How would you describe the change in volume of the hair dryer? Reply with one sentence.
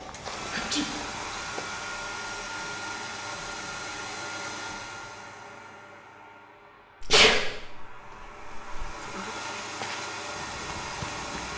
The loudness of the hair dryer goes down, then up.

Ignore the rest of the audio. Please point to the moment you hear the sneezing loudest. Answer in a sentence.
The loudest moment of the sneezing is at 7 seconds.